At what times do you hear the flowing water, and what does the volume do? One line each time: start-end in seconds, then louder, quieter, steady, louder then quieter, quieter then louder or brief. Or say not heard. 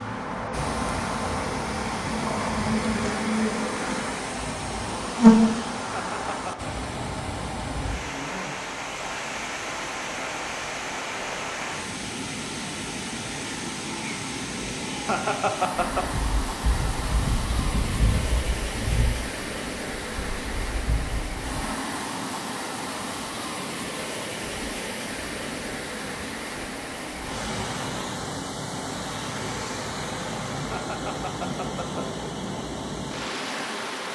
0.0-34.1 steady.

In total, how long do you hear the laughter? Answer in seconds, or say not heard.
3 s.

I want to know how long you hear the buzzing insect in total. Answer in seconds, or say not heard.
12 s.